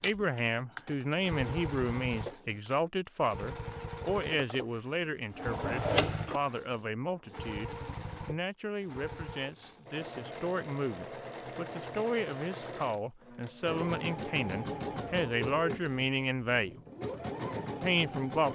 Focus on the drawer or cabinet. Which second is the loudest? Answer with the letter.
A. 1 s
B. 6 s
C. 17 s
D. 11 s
B.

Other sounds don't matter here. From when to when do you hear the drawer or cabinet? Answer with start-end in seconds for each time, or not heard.
4.3-6.4.